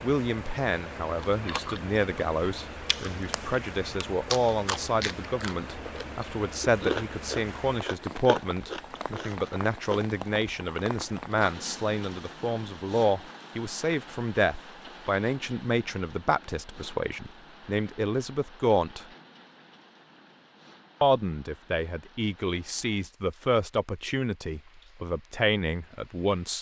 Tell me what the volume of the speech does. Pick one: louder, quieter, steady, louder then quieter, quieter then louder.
steady.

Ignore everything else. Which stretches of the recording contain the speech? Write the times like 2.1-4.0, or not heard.
0.0-19.1, 21.0-26.5.